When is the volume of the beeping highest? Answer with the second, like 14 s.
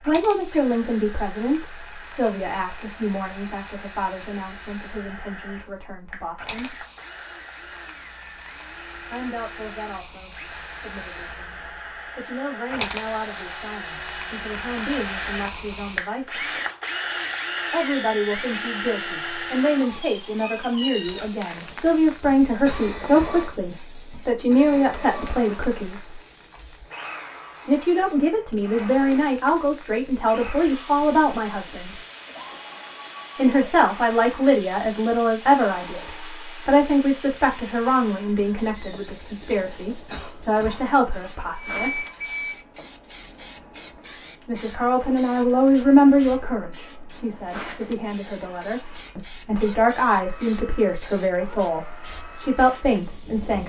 42 s.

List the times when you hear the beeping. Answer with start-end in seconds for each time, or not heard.
41.5-43.4.